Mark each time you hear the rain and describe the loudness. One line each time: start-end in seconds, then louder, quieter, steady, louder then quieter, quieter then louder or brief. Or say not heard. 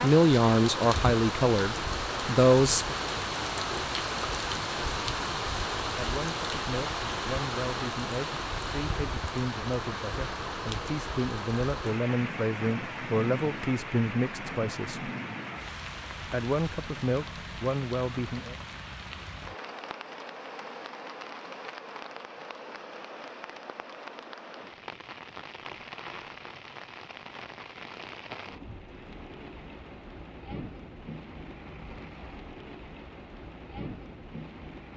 0.0-34.9 quieter.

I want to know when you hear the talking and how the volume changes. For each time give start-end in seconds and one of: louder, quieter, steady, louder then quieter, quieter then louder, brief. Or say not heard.
0.0-3.0 brief
5.8-15.1 louder
16.2-18.6 brief.